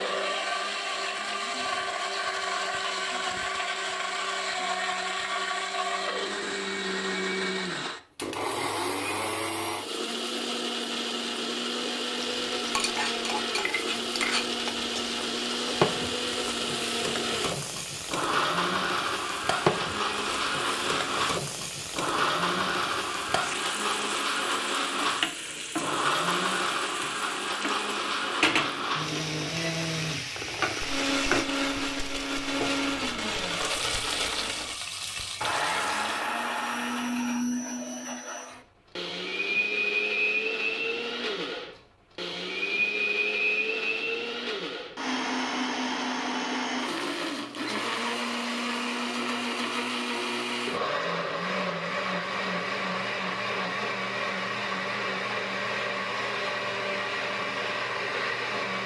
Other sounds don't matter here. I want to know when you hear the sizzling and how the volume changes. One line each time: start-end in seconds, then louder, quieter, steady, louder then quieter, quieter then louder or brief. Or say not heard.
12.3-36.2 steady.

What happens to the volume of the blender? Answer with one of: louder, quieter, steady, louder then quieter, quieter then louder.
steady.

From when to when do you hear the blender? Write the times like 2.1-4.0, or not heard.
0.0-58.8.